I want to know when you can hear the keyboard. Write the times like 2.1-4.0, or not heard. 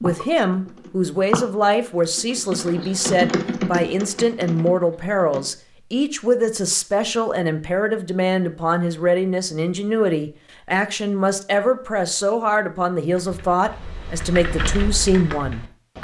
0.0-5.5, 13.1-16.0.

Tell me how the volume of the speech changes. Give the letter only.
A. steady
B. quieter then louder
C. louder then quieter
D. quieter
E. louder
A.